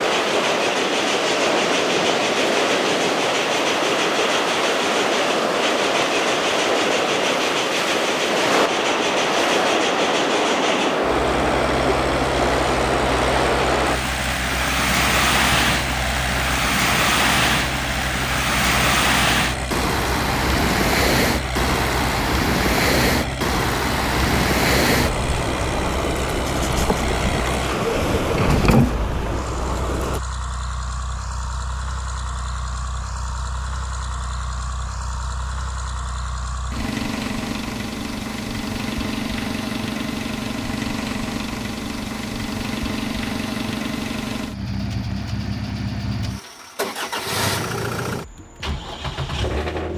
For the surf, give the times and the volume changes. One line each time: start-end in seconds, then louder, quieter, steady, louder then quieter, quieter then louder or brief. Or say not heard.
0.0-30.2 steady.